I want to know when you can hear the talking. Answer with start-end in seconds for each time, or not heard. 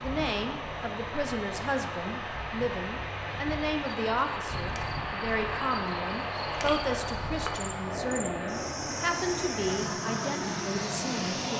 0.0-11.5.